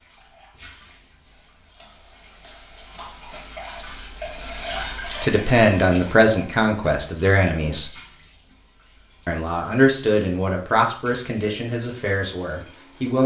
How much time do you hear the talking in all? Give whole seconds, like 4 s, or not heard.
7 s.